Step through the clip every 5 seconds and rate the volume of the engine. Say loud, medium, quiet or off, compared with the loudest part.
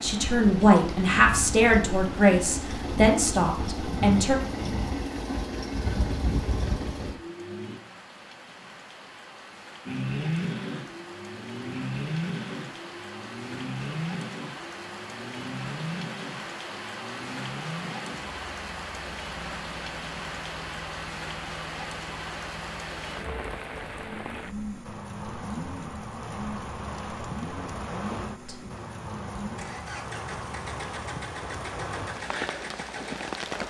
loud, loud, loud, medium, medium, medium, medium.